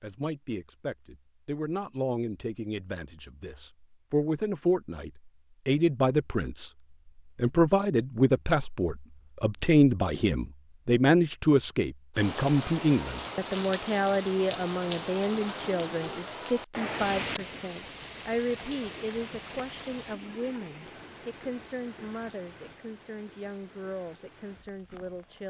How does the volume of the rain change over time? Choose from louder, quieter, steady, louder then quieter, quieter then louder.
quieter.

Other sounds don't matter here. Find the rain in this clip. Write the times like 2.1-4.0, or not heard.
12.2-25.4.